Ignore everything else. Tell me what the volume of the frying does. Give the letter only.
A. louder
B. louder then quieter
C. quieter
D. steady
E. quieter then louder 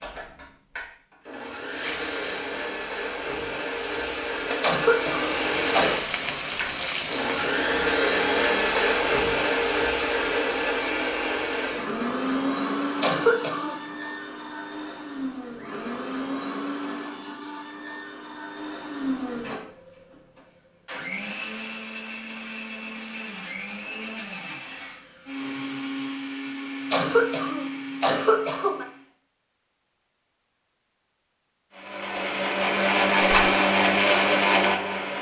A.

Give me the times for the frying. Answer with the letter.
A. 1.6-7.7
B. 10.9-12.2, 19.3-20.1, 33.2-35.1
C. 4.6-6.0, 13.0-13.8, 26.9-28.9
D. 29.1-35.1
A.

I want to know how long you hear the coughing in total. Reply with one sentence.
You can hear the coughing for 4 seconds altogether.